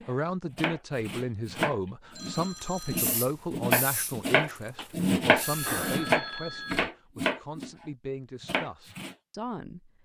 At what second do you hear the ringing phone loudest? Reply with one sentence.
The volume of the ringing phone peaks at 6 seconds.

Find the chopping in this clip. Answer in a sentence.
You can hear the chopping from 0.0 to 9.2 s.